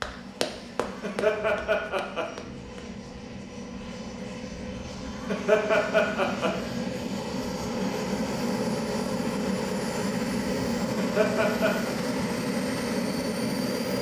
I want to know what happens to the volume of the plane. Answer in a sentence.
The volume of the plane goes up.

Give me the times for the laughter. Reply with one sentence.
The laughter can be heard from 0.9 to 2.2 s, from 5.2 to 6.5 s and from 10.8 to 11.9 s.